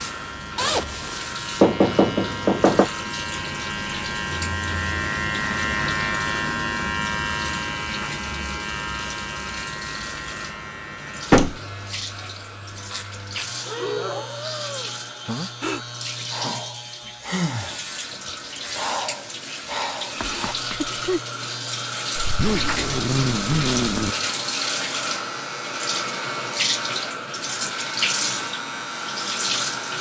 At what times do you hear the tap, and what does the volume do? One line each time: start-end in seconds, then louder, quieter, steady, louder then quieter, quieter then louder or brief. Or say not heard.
0.0-29.9 louder.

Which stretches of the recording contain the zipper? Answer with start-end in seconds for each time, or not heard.
0.6-1.2, 22.1-24.1.